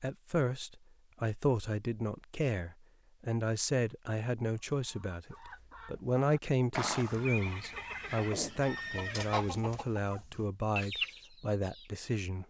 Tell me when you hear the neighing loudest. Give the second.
7 s.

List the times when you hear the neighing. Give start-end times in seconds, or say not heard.
6.7-9.5.